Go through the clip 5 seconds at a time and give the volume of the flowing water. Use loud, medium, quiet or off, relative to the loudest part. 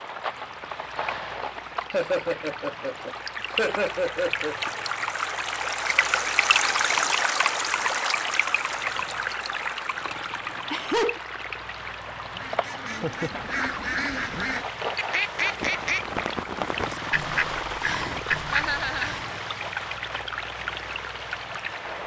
medium, loud, medium, medium, medium.